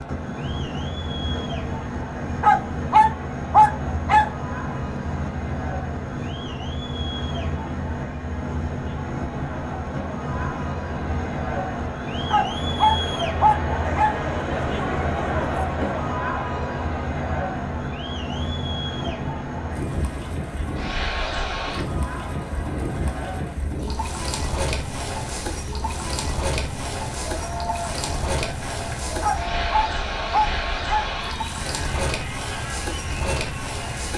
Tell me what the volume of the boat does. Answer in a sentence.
The loudness of the boat stays about the same.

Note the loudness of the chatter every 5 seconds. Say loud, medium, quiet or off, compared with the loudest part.
medium, medium, loud, loud, medium, medium, medium.